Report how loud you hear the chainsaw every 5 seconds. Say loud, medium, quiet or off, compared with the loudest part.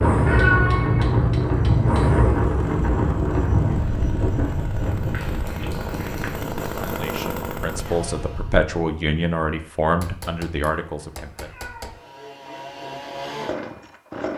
medium, loud, loud.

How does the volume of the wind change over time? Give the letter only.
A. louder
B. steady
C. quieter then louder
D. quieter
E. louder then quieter
D.